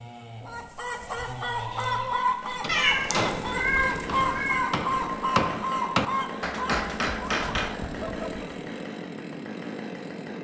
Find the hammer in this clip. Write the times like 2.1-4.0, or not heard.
2.6-7.8.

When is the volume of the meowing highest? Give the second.
3 s.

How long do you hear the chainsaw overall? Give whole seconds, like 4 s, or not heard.
10 s.